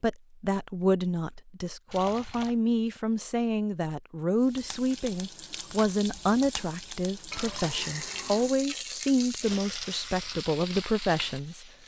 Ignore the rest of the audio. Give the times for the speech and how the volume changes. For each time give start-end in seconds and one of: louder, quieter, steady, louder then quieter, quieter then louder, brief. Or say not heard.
0.0-11.7 steady.